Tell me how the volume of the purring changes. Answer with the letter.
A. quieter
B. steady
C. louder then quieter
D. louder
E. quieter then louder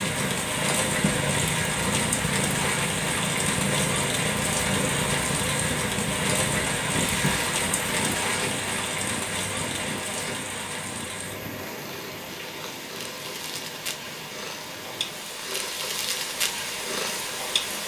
E.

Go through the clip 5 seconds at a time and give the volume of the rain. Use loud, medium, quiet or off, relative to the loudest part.
loud, loud, medium, medium.